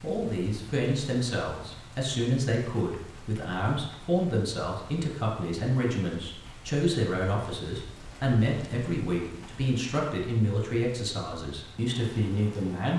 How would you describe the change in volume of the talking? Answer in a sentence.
The volume of the talking stays about the same.